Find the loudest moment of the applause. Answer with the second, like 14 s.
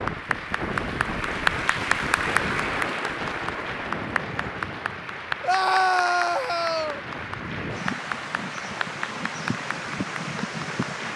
2 s.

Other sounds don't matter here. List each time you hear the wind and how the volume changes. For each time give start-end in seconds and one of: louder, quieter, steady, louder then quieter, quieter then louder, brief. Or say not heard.
0.0-11.1 quieter then louder.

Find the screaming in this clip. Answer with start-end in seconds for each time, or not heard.
5.4-7.0.